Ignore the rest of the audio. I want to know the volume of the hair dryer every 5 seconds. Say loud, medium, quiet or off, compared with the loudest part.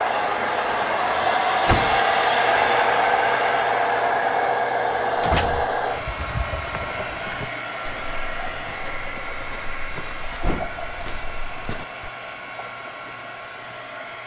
loud, medium, quiet.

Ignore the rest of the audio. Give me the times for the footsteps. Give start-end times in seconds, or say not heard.
6.0-12.1.